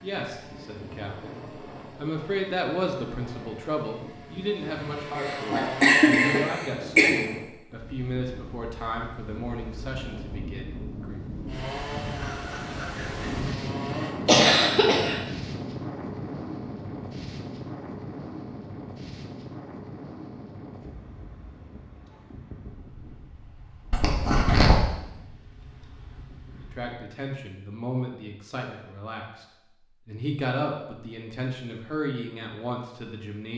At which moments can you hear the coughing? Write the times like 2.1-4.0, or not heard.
5.2-7.1, 14.2-15.2, 23.9-24.8.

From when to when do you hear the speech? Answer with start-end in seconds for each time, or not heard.
0.0-11.2, 26.6-33.5.